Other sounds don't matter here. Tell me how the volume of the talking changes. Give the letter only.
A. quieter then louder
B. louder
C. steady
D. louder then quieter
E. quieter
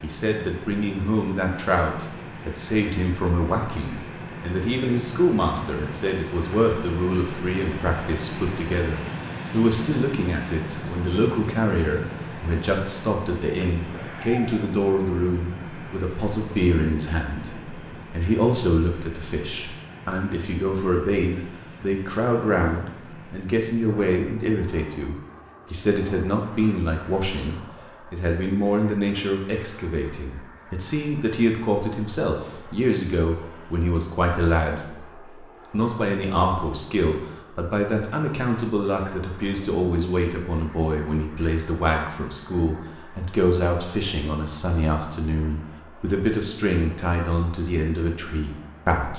C.